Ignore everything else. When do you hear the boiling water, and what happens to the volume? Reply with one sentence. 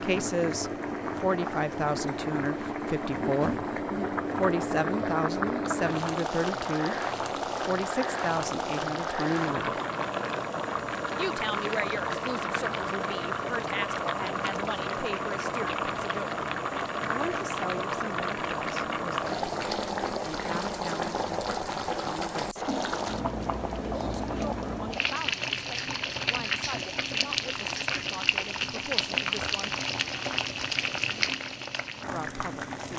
The boiling water can be heard from 0.0 to 32.9 s, at a steady volume.